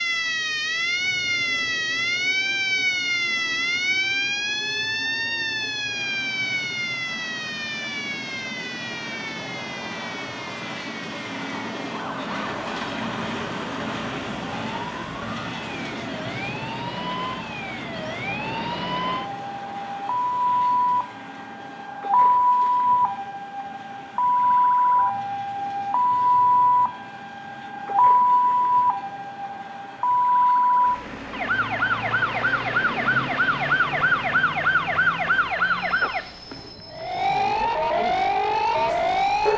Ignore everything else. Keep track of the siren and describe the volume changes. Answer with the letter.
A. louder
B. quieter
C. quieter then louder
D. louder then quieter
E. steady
C.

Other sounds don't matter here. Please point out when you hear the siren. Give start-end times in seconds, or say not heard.
0.0-39.5.